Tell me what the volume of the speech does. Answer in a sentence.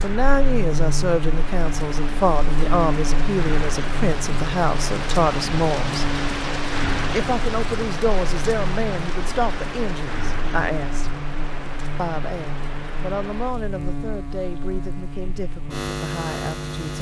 The loudness of the speech goes down.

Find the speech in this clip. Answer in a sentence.
You can hear the speech from 0.0 to 6.0 s, from 7.1 to 11.1 s and from 11.9 to 16.9 s.